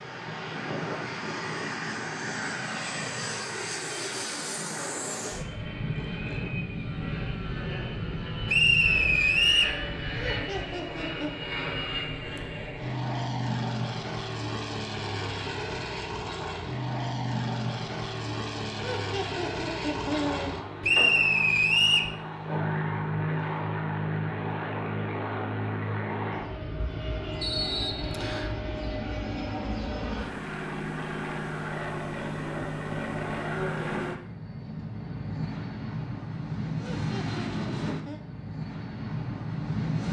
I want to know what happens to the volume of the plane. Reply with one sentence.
The volume of the plane stays about the same.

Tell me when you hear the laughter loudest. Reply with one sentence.
The loudest moment of the laughter is at 20 seconds.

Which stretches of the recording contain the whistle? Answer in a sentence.
The whistle can be heard from 8.4 to 9.8 s, from 20.8 to 22.1 s and from 27.4 to 28.5 s.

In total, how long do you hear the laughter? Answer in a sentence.
You can hear the laughter for 4 seconds altogether.